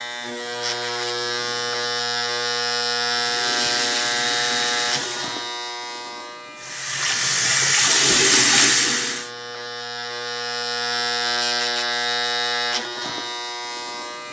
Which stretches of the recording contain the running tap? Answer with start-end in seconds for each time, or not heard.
3.0-5.4, 6.5-9.3.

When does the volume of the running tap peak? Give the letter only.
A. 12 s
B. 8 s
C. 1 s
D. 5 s
B.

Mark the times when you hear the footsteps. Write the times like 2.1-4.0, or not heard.
not heard.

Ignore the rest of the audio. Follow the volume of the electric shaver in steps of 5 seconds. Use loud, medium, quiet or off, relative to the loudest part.
loud, medium, loud.